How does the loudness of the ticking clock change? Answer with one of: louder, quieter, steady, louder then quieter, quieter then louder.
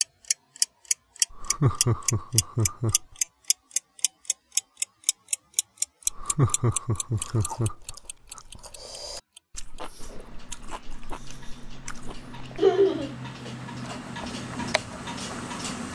quieter then louder.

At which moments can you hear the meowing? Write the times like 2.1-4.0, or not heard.
not heard.